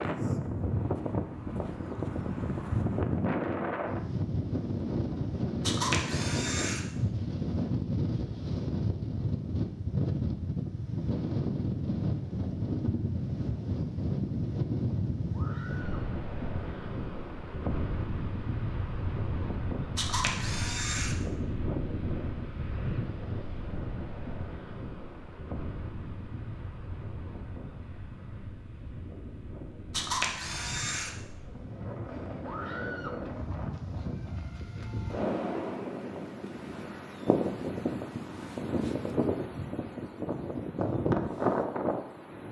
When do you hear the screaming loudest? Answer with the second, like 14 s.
33 s.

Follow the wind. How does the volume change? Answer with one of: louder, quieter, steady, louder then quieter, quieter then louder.
quieter then louder.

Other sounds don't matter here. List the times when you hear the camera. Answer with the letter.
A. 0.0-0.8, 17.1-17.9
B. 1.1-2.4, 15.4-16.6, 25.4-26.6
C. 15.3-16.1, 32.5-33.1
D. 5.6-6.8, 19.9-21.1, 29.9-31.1
D.